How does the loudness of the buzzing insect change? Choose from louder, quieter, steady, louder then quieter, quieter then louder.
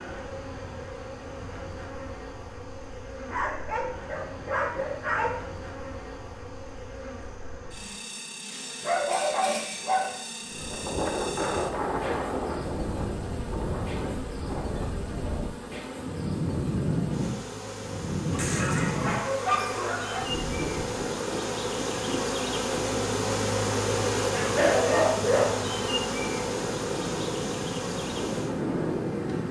louder.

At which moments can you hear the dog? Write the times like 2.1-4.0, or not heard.
3.2-5.3, 8.8-10.2, 18.3-20.2, 24.3-25.6.